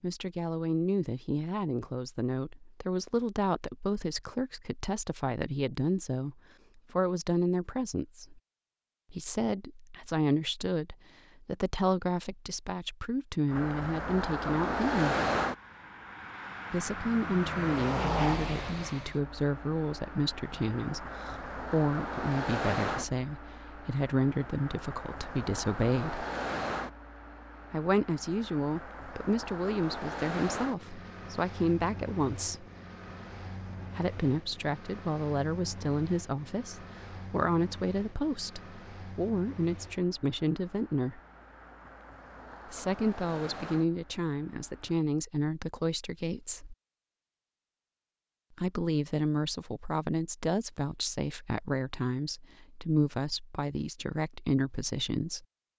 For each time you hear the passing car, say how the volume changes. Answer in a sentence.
The passing car can be heard from 13.5 to 45.0 s, getting quieter.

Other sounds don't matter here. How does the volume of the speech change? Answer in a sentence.
The volume of the speech stays about the same.